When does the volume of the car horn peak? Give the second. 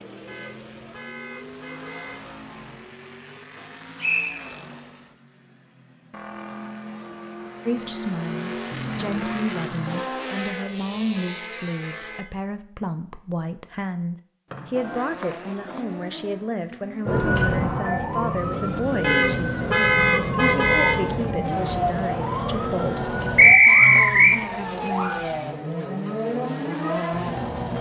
20 s.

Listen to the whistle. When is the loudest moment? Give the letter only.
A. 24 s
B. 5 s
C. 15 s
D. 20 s
A.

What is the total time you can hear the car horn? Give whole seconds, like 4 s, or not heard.
6 s.